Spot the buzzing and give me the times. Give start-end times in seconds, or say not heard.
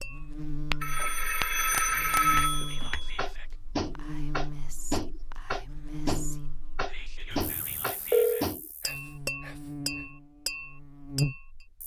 0.0-11.8.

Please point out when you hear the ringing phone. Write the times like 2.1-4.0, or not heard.
0.8-3.2, 7.3-8.4.